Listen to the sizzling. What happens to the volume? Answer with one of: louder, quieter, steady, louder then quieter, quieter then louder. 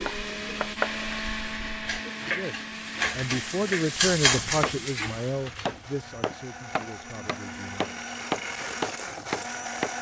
louder then quieter.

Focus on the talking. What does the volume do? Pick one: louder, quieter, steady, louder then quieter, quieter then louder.
louder then quieter.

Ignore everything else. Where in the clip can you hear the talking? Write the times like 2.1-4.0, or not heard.
2.1-8.0.